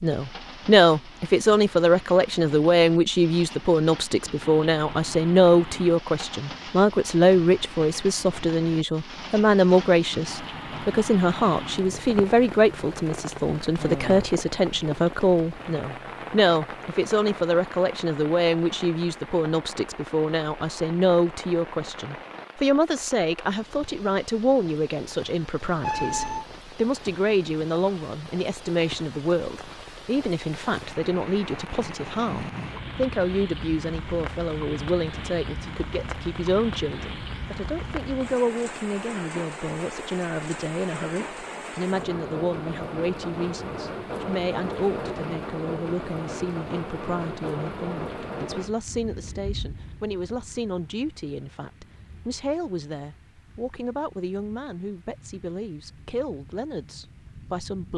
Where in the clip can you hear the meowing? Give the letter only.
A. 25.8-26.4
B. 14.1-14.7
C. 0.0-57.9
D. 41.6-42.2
A.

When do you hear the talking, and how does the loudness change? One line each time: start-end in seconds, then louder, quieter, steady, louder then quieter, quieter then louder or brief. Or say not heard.
0.0-57.9 quieter.